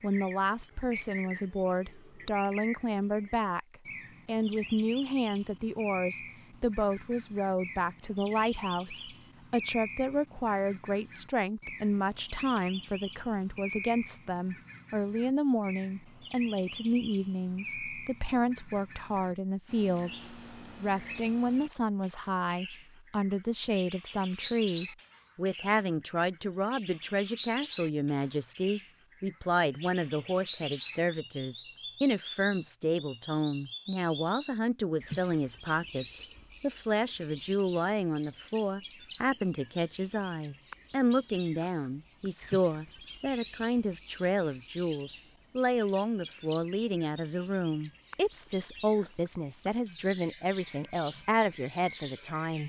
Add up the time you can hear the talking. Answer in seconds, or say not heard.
52 s.